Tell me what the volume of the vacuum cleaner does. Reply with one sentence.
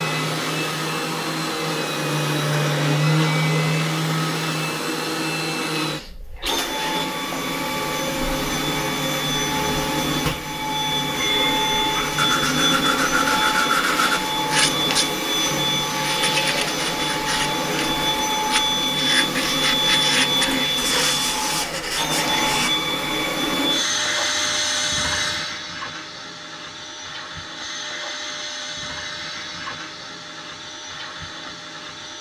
The volume of the vacuum cleaner goes down.